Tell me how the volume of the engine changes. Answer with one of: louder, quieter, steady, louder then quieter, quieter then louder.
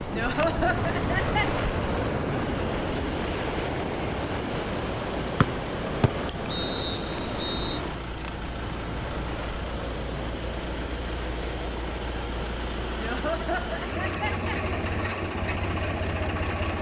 louder.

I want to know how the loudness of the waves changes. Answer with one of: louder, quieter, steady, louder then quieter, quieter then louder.
quieter.